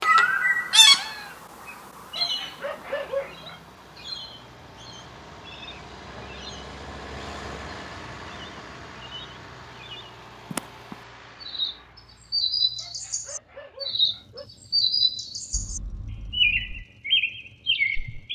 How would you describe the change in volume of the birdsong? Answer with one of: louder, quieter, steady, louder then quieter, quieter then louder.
quieter then louder.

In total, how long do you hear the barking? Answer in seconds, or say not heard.
3 s.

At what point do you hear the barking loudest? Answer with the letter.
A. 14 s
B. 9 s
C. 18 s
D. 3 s
D.